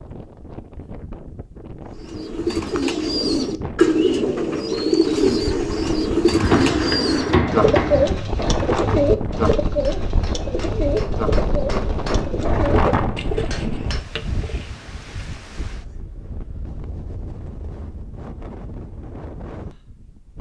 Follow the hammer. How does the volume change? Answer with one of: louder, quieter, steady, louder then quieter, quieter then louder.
quieter then louder.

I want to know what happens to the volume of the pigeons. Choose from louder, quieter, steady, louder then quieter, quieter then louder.
quieter.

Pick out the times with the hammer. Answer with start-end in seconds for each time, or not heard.
6.3-14.0.